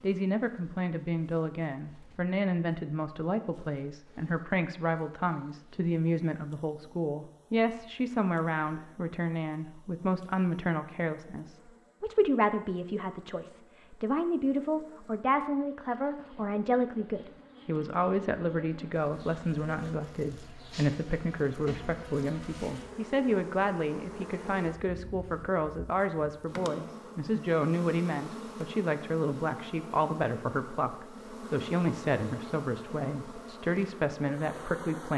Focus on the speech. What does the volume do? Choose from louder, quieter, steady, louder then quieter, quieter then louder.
steady.